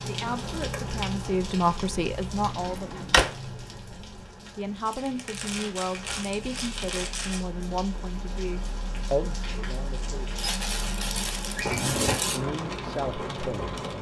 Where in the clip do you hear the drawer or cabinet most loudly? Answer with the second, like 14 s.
3 s.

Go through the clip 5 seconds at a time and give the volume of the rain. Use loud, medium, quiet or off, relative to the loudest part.
loud, medium, loud.